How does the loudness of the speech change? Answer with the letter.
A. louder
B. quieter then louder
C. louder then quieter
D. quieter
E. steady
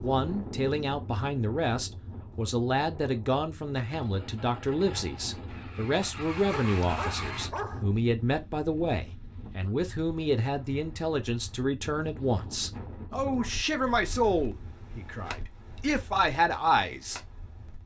E.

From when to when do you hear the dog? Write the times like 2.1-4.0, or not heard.
6.5-7.8.